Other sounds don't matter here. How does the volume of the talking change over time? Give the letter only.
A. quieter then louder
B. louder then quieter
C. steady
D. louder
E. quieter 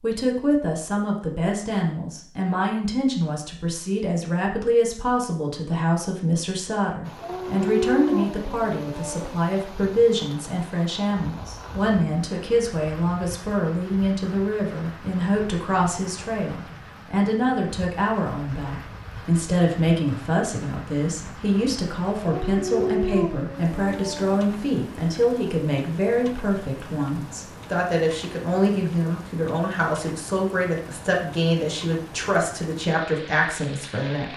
C.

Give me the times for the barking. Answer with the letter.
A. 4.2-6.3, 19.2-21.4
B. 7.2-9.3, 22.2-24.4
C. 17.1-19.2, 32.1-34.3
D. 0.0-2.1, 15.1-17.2
B.